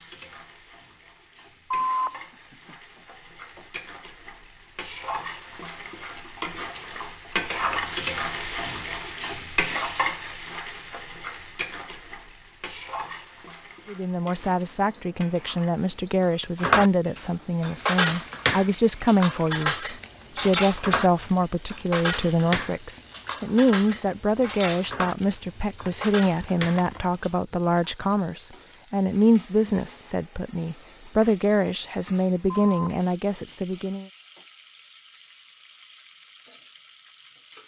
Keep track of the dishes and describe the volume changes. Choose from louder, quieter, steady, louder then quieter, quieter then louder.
quieter.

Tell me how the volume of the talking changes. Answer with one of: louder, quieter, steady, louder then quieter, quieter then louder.
steady.